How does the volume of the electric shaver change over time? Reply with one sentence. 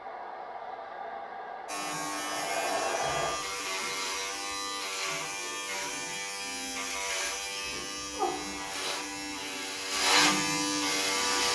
The loudness of the electric shaver goes up.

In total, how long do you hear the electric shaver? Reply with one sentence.
The electric shaver can be heard for 10 seconds in total.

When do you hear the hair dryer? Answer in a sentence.
The hair dryer can be heard from 0.0 to 3.4 s.